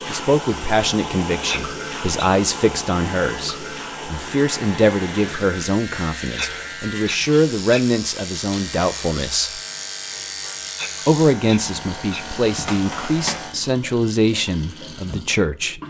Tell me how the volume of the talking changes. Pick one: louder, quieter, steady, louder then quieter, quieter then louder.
steady.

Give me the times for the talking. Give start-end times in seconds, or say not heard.
0.1-9.6, 11.1-15.8.